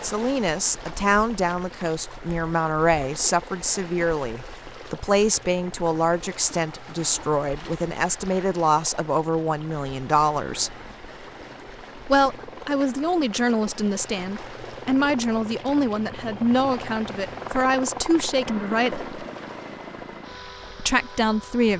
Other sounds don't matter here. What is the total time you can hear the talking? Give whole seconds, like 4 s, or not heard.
19 s.